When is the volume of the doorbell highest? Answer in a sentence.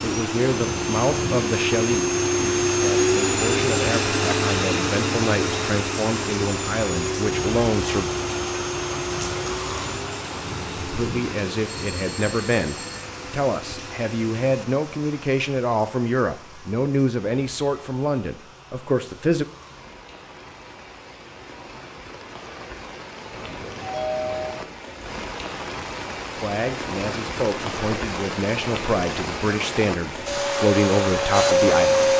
The volume of the doorbell peaks at 24 seconds.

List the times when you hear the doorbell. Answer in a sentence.
You can hear the doorbell from 11.7 to 13.1 s and from 23.3 to 24.6 s.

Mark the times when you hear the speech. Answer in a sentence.
The speech can be heard from 0.0 to 8.1 s, from 10.8 to 19.4 s and from 26.4 to 32.1 s.